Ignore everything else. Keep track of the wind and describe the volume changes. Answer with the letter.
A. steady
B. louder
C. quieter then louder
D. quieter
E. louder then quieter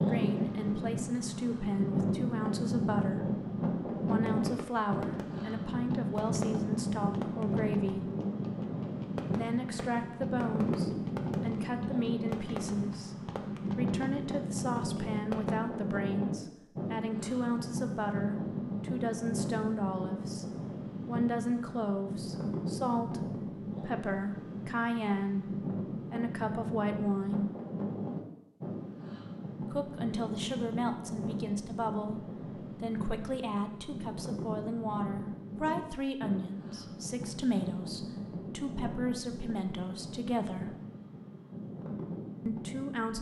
D.